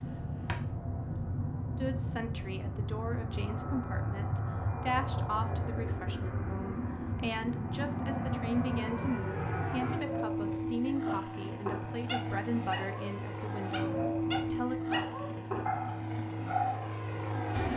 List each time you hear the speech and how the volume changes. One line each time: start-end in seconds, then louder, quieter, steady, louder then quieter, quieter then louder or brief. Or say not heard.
1.8-14.8 steady.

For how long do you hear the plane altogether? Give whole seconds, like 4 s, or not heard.
18 s.